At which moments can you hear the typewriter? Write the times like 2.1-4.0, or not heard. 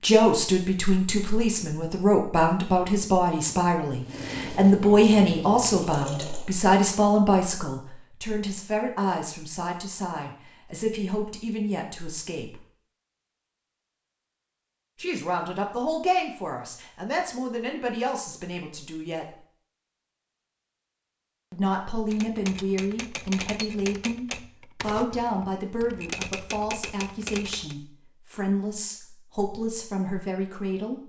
22.1-27.8.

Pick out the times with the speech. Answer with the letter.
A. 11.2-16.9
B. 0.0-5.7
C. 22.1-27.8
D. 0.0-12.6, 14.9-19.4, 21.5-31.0
D.